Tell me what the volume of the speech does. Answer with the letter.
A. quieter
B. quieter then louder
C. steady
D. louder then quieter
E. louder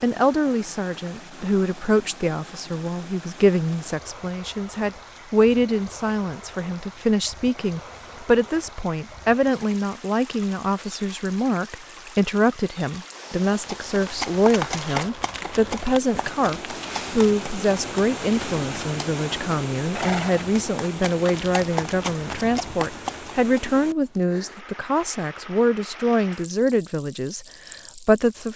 C.